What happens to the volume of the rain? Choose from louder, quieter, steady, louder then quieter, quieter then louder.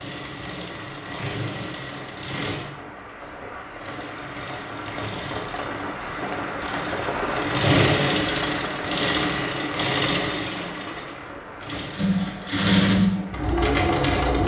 louder then quieter.